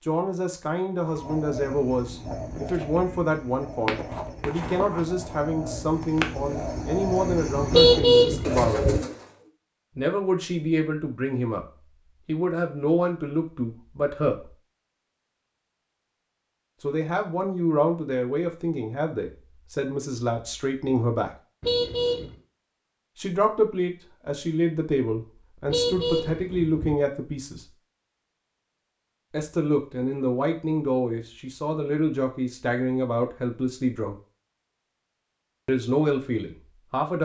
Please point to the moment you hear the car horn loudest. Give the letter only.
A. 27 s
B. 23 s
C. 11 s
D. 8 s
D.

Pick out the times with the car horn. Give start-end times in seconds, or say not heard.
7.7-9.0, 21.6-22.4, 25.6-27.0.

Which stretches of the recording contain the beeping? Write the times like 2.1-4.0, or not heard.
not heard.